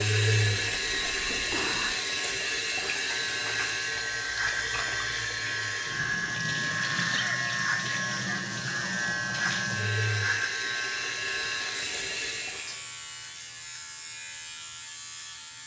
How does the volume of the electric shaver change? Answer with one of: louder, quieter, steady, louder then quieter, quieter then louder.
louder then quieter.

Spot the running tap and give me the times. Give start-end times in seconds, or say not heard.
0.0-12.8.